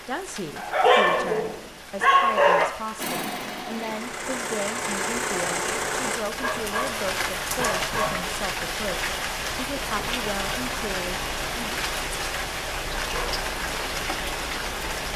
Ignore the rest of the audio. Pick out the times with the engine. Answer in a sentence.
You can hear the engine from 3.0 to 6.2 s.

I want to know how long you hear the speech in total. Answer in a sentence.
The speech can be heard for 12 seconds in total.